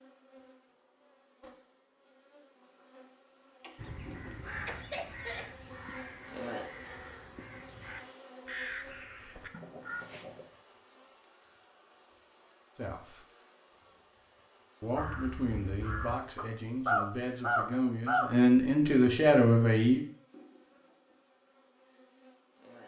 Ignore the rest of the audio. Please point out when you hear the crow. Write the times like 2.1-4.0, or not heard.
3.8-10.4, 14.9-18.3.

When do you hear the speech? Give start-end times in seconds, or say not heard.
12.8-13.2, 14.8-20.0.